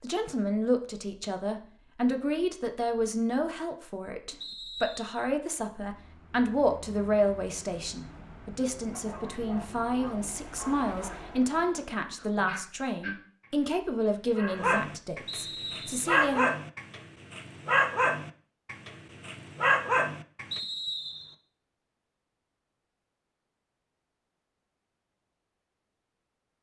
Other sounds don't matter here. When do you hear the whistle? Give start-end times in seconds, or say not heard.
4.4-5.2, 15.2-16.1, 20.5-21.4.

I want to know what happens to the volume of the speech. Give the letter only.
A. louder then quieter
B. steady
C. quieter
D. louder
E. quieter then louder
B.